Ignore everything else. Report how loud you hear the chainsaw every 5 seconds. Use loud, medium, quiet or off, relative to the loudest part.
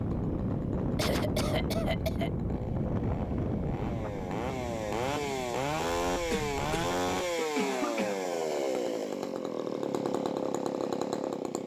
medium, loud, loud.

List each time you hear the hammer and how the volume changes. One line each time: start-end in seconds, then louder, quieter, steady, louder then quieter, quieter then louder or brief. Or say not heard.
not heard.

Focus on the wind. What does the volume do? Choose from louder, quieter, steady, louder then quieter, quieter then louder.
quieter.